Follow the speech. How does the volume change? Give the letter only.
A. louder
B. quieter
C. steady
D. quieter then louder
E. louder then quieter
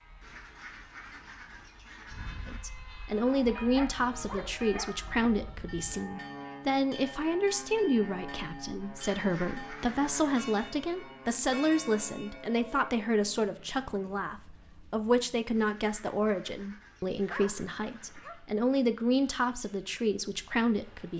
C.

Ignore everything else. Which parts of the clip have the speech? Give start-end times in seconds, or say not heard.
2.5-21.1.